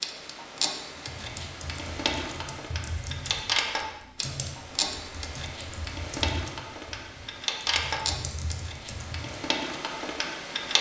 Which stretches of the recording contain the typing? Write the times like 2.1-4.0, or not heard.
0.9-9.4.